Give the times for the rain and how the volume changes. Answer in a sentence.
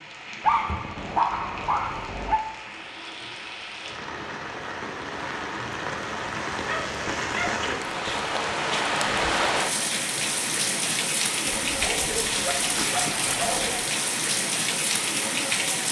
The rain can be heard from 0.0 to 15.8 s, getting louder.